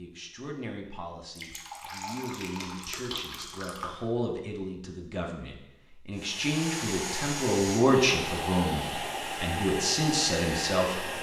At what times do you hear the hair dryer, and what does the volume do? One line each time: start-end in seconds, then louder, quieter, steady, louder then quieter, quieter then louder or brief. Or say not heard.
6.2-11.1 steady.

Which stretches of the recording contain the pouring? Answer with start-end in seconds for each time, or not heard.
1.4-4.0.